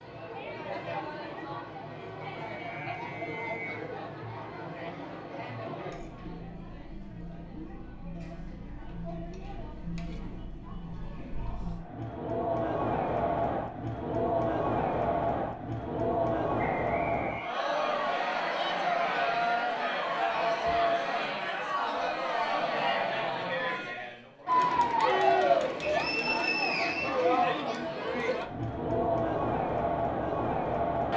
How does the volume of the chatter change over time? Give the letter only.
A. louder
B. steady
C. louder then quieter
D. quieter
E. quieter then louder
A.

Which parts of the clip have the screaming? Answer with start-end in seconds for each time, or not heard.
24.4-25.7.